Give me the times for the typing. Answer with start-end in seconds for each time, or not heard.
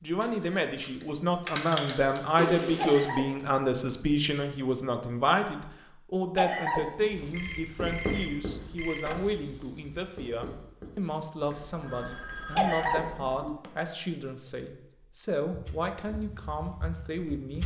0.2-2.2, 15.5-17.6.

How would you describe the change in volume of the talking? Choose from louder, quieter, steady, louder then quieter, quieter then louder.
quieter.